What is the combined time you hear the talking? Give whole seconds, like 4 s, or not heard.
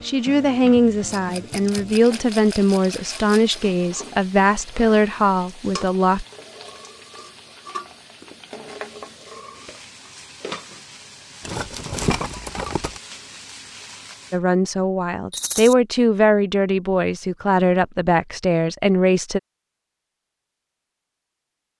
11 s.